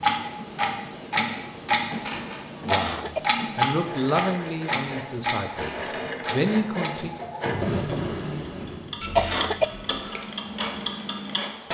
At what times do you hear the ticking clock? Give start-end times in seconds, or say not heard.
0.0-11.7.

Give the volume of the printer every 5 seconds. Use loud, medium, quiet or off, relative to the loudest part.
medium, loud, medium.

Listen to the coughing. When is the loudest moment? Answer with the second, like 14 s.
9 s.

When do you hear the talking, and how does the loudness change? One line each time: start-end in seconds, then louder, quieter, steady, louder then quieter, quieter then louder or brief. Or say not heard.
2.6-7.2 quieter then louder.